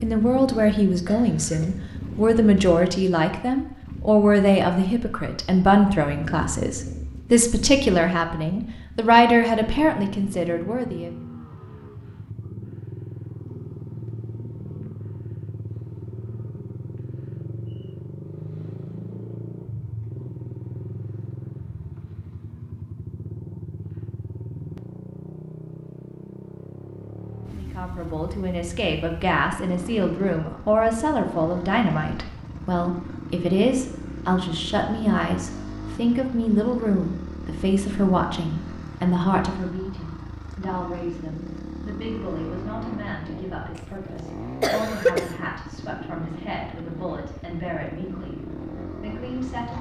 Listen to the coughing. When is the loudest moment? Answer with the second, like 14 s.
45 s.